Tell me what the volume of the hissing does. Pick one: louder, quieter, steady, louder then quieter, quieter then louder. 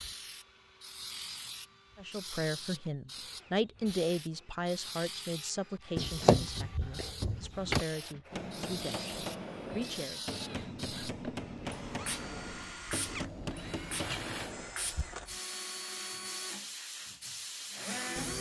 steady.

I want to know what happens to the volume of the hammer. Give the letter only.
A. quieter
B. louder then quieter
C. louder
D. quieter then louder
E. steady
E.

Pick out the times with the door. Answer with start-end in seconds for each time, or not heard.
6.0-7.8.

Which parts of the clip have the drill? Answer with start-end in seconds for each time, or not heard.
0.0-18.3.